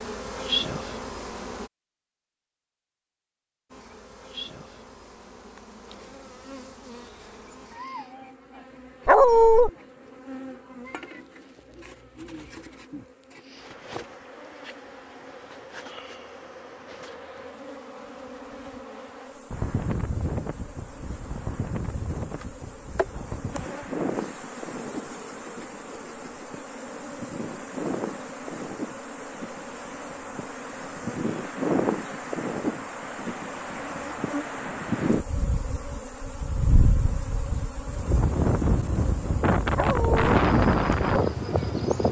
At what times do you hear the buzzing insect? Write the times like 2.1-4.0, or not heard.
0.0-1.7, 3.7-42.0.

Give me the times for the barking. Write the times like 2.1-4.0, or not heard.
9.1-9.7, 39.8-40.2.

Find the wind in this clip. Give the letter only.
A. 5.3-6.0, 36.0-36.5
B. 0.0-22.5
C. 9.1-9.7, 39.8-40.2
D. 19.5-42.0
D.